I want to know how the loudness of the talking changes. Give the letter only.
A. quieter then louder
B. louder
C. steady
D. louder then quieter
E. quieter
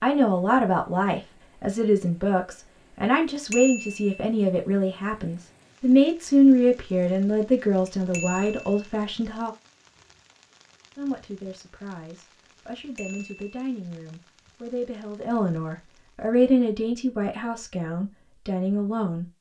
A.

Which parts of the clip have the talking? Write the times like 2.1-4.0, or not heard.
0.0-9.5, 10.9-19.3.